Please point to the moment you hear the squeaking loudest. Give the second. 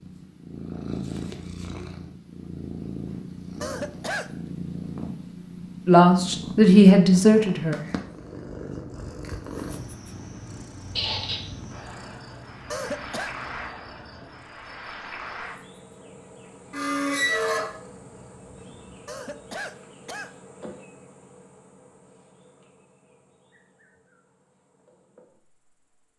17 s.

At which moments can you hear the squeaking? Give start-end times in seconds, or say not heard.
10.9-11.4, 16.7-17.7.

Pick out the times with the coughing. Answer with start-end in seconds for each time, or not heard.
3.6-4.3, 12.7-13.3, 19.1-20.3.